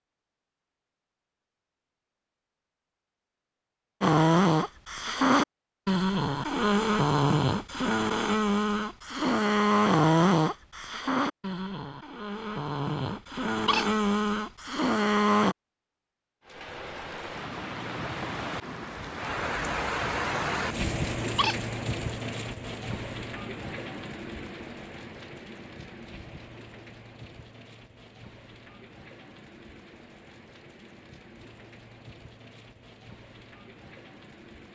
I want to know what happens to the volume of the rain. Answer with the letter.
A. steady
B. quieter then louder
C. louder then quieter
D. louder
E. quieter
E.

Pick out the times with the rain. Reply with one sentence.
You can hear the rain from 16.4 to 34.7 s.